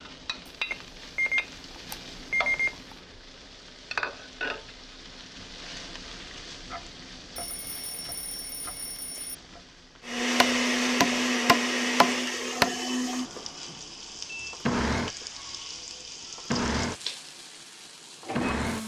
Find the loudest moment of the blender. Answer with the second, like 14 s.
11 s.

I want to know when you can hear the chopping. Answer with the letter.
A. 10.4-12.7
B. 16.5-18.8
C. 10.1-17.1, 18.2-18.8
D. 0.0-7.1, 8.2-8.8
A.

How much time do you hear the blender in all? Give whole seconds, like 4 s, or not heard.
8 s.